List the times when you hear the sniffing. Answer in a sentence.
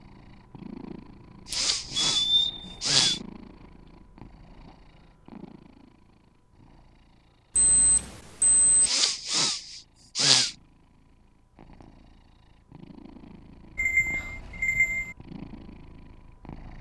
You can hear the sniffing from 1.4 to 3.2 s and from 8.8 to 10.6 s.